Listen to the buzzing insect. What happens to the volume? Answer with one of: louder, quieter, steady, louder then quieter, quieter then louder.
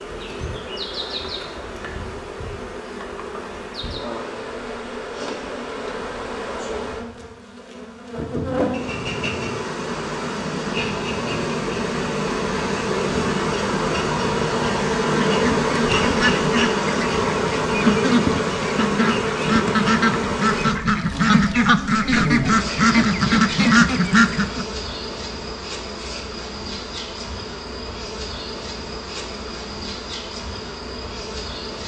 louder then quieter.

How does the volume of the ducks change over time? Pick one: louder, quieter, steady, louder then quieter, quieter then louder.
louder.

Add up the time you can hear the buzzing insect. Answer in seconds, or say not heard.
32 s.